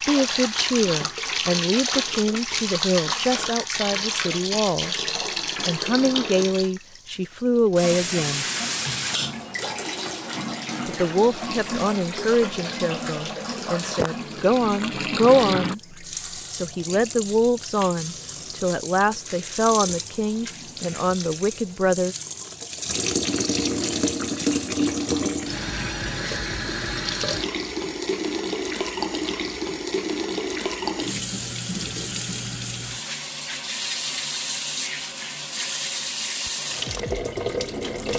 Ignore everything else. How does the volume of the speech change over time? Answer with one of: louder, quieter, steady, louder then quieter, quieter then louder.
steady.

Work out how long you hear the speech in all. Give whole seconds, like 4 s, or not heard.
20 s.